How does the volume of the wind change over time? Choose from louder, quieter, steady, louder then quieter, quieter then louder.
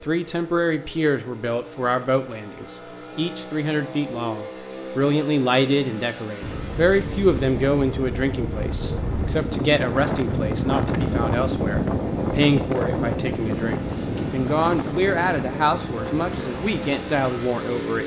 louder then quieter.